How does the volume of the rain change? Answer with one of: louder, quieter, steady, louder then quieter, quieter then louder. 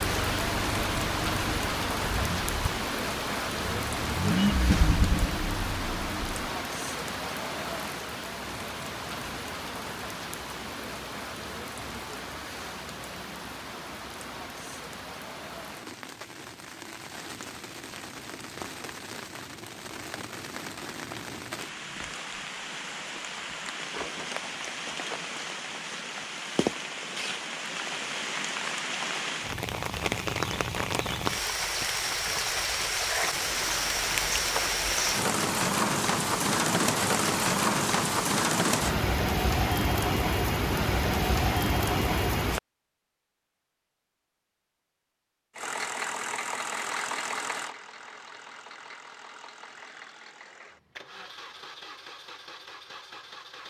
quieter then louder.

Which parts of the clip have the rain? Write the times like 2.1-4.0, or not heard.
0.0-42.6.